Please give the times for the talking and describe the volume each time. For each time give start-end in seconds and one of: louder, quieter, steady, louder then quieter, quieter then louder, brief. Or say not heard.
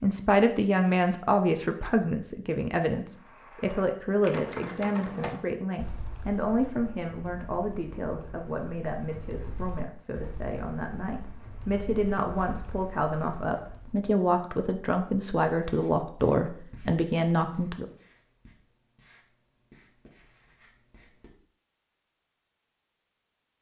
0.0-17.9 quieter then louder.